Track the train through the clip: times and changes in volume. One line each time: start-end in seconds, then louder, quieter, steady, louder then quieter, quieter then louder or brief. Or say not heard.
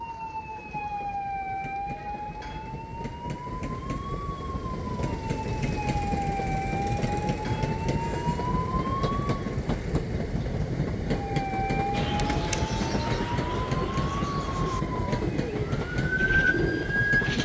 0.0-17.3 louder.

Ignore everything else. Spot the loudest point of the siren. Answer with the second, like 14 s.
17 s.